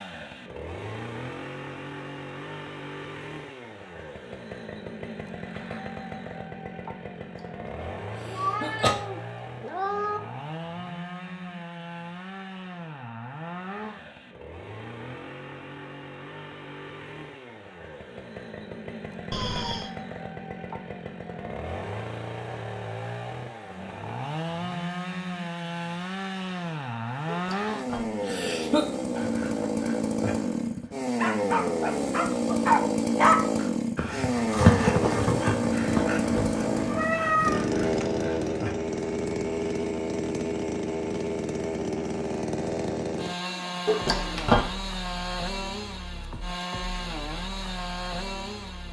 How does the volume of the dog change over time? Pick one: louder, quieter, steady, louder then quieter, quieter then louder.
louder then quieter.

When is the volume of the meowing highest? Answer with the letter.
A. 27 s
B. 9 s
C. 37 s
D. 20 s
C.